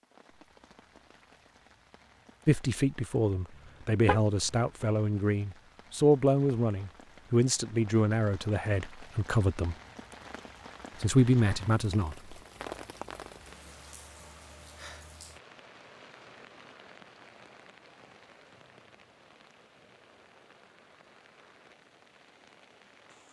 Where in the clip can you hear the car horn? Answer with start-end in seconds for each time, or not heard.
3.5-4.6.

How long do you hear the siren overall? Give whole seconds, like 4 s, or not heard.
not heard.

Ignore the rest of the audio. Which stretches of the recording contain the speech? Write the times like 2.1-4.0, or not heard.
2.5-9.8, 11.0-12.3.